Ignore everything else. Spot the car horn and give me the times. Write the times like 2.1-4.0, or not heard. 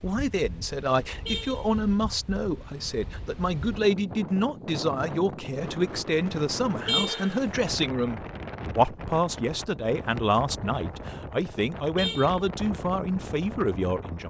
1.2-1.7, 6.8-7.3, 11.9-12.4.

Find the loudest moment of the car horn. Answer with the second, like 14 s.
7 s.